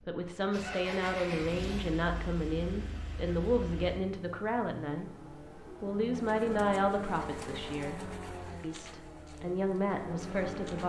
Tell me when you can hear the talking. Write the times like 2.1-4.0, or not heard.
0.1-5.1, 5.8-10.8.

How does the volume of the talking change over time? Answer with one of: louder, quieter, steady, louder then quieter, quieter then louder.
steady.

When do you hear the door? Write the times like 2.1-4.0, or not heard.
not heard.